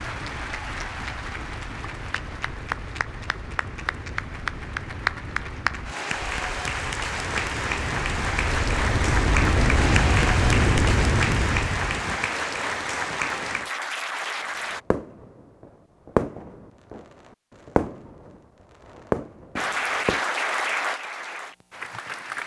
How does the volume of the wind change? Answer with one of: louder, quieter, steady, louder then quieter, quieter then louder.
louder.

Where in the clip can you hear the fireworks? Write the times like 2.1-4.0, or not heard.
14.9-20.2.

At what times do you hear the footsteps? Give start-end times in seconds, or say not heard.
not heard.